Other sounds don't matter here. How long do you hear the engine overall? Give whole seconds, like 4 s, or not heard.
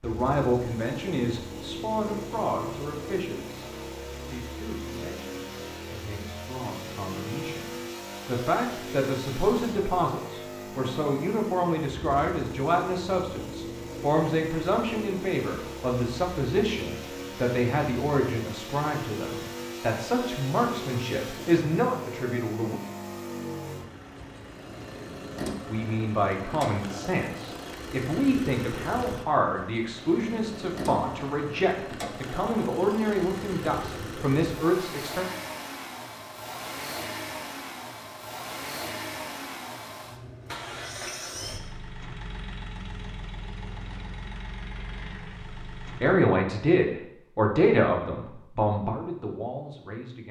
46 s.